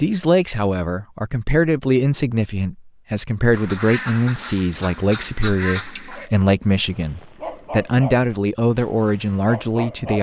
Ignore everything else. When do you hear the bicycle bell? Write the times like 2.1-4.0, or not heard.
6.0-6.5.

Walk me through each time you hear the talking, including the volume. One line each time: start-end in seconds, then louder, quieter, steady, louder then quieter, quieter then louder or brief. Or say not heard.
0.0-10.1 steady.